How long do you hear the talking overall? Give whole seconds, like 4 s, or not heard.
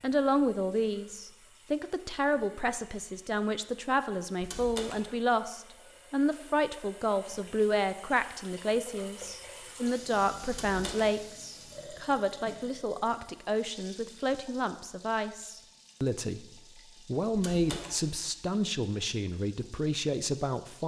20 s.